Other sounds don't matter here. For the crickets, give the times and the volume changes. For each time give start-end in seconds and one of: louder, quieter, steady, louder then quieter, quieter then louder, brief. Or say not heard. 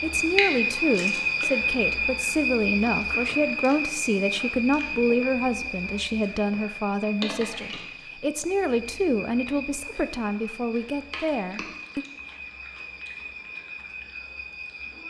0.0-15.0 quieter.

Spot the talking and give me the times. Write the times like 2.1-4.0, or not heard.
0.0-12.1.